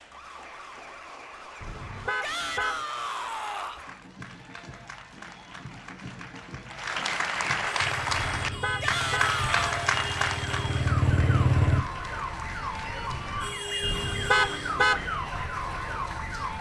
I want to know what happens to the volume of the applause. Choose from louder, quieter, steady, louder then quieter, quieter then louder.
louder then quieter.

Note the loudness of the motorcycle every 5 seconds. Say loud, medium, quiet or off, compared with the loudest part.
off, quiet, loud, off.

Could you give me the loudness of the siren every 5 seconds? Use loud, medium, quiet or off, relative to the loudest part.
quiet, medium, loud, loud.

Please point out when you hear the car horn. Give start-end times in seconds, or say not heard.
1.6-2.9, 8.4-9.3, 13.8-15.1.